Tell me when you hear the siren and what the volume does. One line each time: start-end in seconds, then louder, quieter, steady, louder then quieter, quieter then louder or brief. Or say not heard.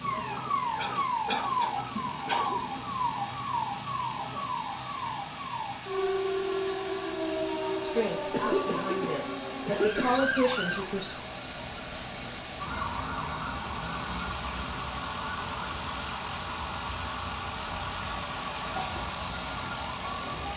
0.0-20.5 quieter.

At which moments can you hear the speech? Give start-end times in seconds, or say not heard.
7.8-11.2.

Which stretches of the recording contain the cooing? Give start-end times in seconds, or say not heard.
not heard.